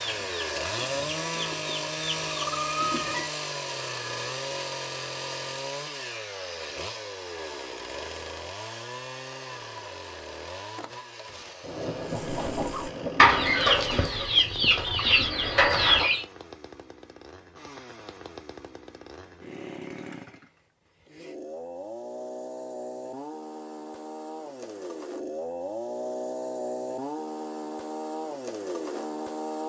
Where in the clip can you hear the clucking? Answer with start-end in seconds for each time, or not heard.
0.0-3.4, 12.1-16.2.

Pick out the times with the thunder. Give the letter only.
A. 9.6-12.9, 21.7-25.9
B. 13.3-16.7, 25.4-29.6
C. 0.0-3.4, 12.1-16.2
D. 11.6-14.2
D.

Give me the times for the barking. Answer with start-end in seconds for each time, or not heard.
not heard.